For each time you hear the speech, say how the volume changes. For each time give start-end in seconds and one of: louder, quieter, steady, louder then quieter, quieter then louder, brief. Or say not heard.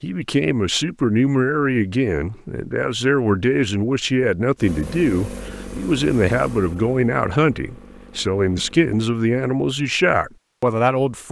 0.0-11.2 steady.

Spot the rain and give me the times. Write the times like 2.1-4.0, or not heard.
not heard.